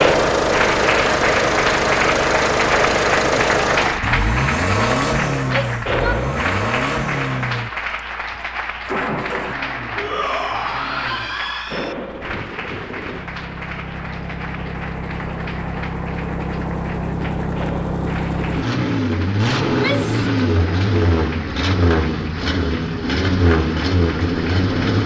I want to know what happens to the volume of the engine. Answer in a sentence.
The loudness of the engine goes down, then up.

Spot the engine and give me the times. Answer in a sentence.
You can hear the engine from 0.0 to 25.0 s.